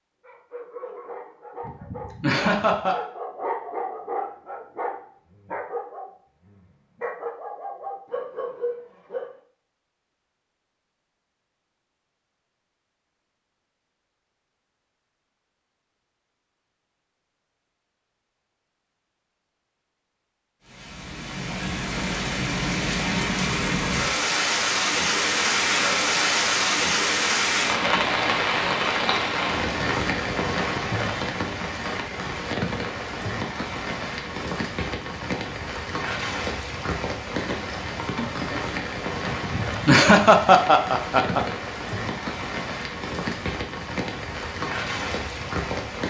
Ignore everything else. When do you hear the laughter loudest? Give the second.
40 s.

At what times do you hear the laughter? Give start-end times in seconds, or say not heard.
1.6-3.0, 39.2-41.5.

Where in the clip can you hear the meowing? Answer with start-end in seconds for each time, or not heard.
not heard.